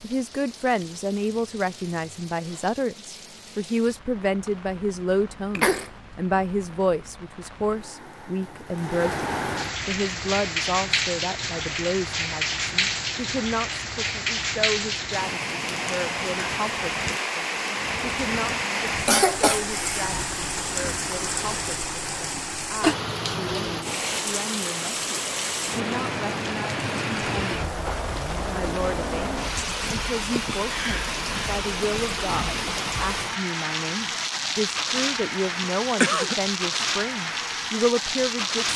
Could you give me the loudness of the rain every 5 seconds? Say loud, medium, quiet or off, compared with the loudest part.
quiet, medium, loud, loud, loud, loud, loud, loud.